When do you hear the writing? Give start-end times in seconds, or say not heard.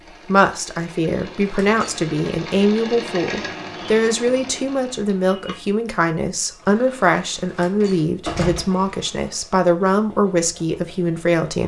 not heard.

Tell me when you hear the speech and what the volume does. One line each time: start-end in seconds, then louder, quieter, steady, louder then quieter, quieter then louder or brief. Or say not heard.
0.2-11.6 steady.